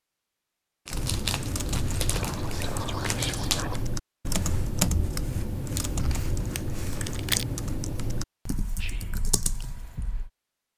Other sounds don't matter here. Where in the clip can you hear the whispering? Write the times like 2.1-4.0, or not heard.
2.1-3.9, 8.8-9.2.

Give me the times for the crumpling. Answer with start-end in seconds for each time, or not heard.
0.8-3.6, 5.7-7.5.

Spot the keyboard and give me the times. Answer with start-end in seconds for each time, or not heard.
0.9-10.3.